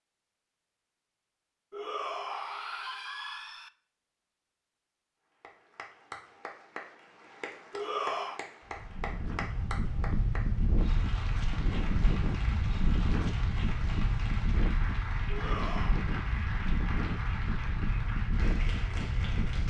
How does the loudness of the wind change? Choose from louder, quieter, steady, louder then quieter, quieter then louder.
steady.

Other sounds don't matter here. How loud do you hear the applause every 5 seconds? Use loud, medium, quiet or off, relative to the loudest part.
off, loud, loud, loud.